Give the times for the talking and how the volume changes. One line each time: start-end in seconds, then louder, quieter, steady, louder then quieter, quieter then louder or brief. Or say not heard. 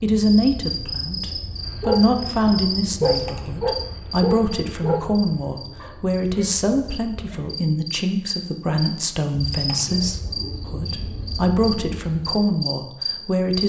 0.0-13.6 steady.